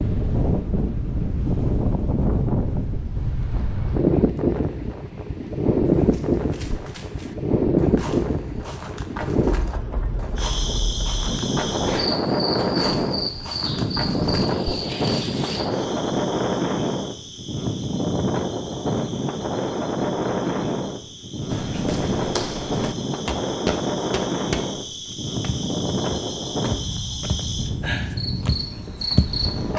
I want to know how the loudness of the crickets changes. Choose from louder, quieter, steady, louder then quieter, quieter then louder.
quieter then louder.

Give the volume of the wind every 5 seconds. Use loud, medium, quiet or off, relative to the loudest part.
loud, loud, loud, loud, loud, medium.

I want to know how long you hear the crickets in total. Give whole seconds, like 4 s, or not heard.
19 s.